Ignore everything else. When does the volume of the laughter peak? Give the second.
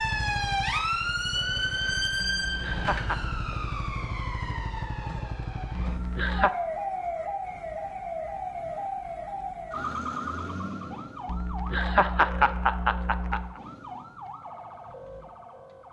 12 s.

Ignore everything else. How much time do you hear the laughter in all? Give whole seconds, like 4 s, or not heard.
4 s.